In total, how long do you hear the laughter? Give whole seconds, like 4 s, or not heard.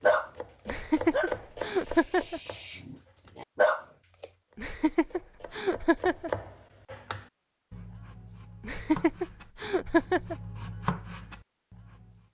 5 s.